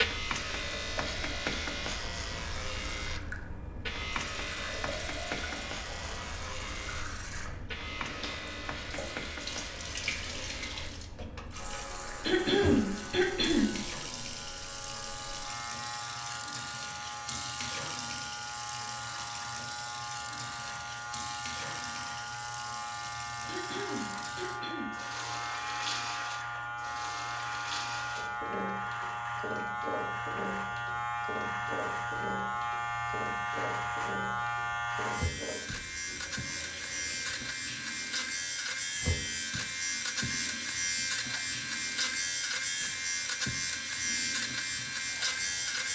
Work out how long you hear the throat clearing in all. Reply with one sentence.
You can hear the throat clearing for 3 seconds altogether.